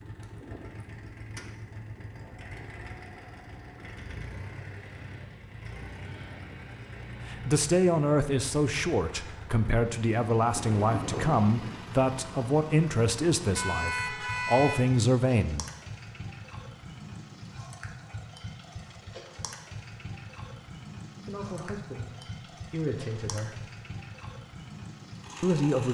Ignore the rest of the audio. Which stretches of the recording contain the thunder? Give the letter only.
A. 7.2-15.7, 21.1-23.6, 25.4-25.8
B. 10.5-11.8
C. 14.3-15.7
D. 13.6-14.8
B.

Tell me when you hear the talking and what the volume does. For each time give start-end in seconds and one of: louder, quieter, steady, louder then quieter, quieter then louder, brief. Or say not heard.
7.2-15.7 steady
21.1-23.6 brief
25.4-25.8 brief.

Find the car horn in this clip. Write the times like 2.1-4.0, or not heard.
13.6-14.8.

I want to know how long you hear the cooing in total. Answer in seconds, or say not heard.
not heard.